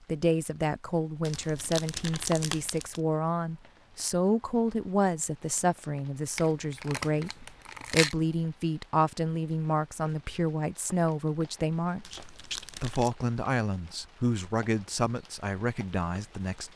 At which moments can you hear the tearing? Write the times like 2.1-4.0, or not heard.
1.2-3.0, 6.3-8.2, 12.0-13.2.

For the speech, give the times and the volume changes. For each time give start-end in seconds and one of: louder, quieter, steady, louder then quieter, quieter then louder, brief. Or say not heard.
0.1-16.7 steady.